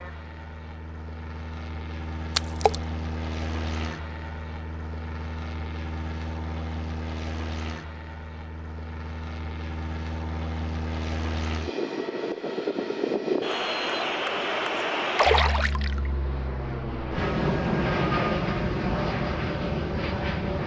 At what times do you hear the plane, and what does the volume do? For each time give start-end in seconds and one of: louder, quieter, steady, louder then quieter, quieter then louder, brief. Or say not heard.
0.0-20.6 louder.